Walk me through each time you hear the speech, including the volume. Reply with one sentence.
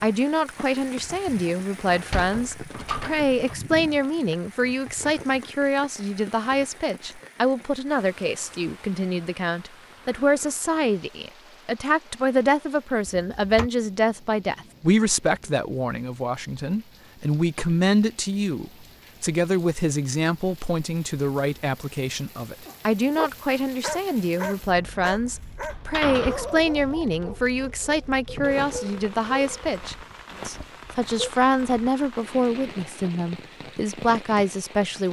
You can hear the speech from 0.0 to 35.0 s, at a steady volume.